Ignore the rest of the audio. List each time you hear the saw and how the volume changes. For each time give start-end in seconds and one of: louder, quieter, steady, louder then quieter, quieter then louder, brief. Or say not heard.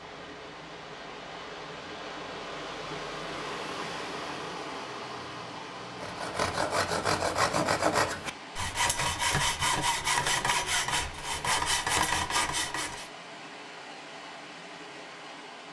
6.0-13.1 steady.